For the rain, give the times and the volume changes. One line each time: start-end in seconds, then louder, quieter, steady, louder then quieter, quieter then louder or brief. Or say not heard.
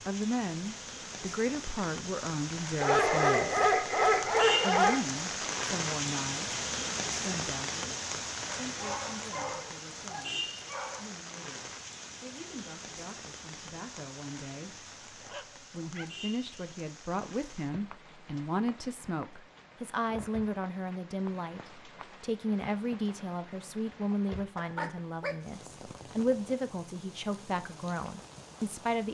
0.0-29.0 quieter.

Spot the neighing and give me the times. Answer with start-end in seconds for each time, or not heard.
not heard.